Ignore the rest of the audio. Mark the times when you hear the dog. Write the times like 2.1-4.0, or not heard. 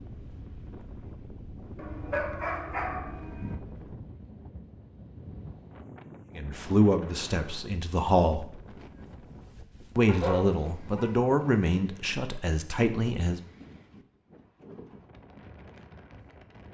1.8-3.6, 10.1-11.2.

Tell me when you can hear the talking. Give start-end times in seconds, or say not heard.
6.3-8.5, 9.9-13.4.